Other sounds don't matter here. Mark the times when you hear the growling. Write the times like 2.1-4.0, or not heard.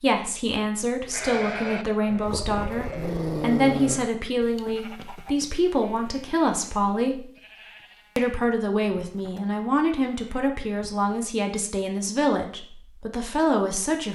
2.2-4.0.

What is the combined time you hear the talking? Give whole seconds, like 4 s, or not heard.
13 s.